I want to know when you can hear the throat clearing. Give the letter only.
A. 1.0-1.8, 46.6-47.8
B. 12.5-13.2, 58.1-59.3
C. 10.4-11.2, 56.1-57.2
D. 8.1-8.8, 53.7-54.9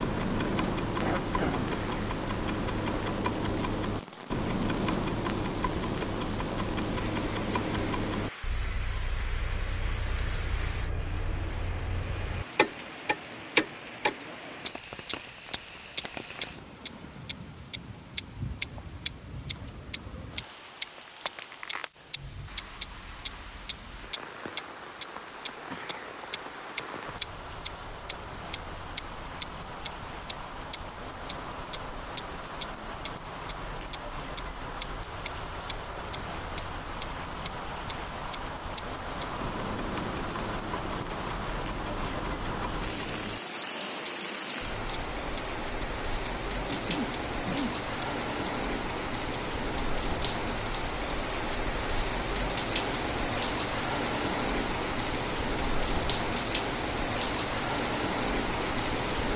A.